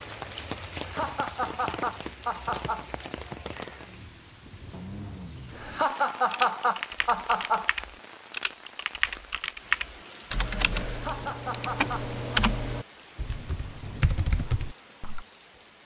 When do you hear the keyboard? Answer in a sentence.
The keyboard can be heard from 5.5 to 15.2 s.